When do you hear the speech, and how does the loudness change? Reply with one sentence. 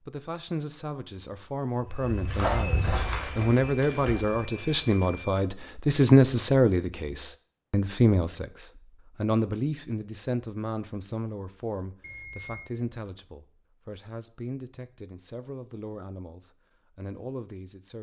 The speech can be heard from 0.1 to 17.9 s, getting louder then quieter.